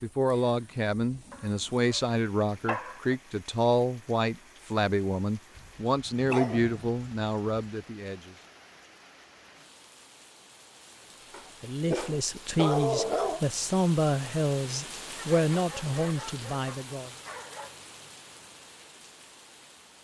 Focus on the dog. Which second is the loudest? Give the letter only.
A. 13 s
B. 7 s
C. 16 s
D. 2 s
A.